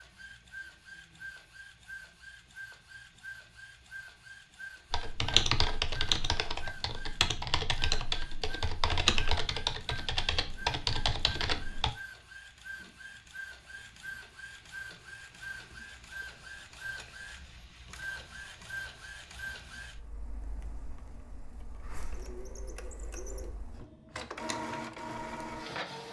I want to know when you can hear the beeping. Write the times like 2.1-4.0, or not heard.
not heard.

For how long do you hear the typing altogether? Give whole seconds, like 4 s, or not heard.
7 s.